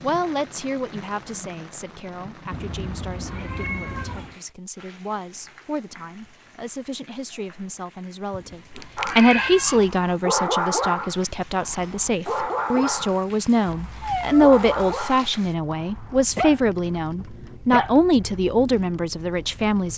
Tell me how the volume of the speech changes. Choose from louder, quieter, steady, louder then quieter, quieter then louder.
louder.